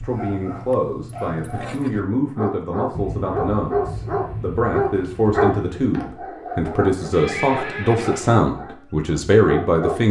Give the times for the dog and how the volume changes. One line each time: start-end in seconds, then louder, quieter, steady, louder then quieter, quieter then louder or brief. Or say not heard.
0.0-10.0 louder then quieter.